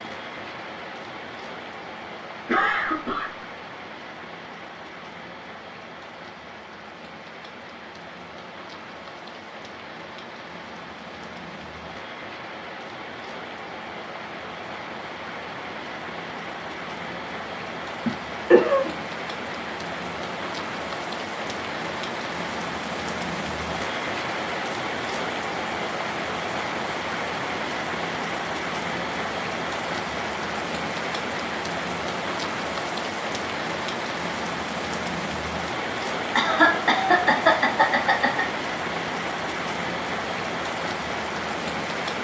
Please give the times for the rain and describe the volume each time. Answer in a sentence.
You can hear the rain from 0.0 to 42.1 s, getting louder.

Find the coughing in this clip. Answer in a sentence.
The coughing can be heard from 2.5 to 3.3 s, from 18.1 to 18.9 s and from 36.4 to 38.5 s.